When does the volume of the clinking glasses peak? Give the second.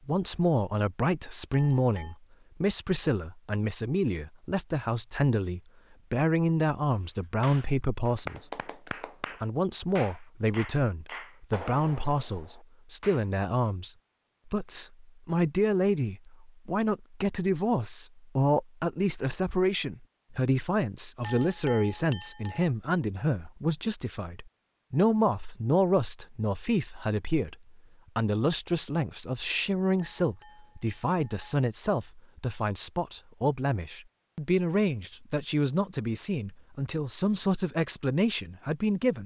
22 s.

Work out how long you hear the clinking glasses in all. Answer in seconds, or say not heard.
4 s.